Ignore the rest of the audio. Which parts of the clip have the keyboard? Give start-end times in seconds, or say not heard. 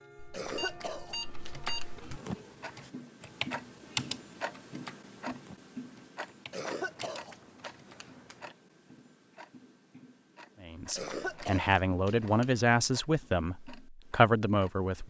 1.3-8.0.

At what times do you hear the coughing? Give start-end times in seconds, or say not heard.
0.3-2.4, 6.5-8.6, 10.9-12.7.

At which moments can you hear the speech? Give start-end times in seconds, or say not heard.
10.6-15.0.